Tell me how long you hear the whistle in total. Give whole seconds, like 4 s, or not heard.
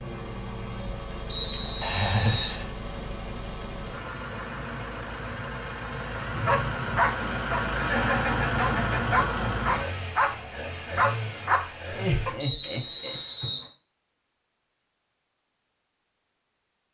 3 s.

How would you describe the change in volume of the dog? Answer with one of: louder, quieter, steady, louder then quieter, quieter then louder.
quieter then louder.